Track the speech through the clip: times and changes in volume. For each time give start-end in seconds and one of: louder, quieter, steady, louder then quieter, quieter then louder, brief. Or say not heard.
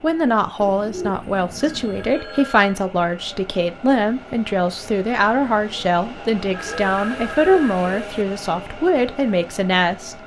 0.0-10.2 steady.